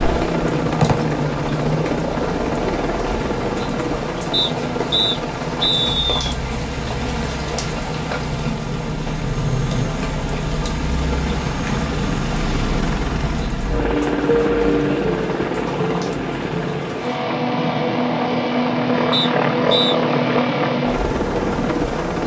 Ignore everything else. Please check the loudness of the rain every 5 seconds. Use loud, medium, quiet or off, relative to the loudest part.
medium, loud, medium, medium, off.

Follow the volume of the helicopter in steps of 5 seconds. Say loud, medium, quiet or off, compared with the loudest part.
loud, medium, loud, loud, loud.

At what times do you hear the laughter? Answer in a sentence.
You can't hear the laughter here.